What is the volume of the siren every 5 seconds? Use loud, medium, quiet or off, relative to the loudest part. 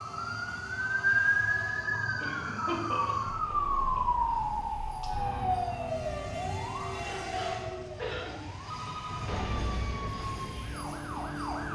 loud, medium, medium.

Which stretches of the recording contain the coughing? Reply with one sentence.
The coughing can be heard from 2.2 to 4.0 s and from 7.0 to 8.5 s.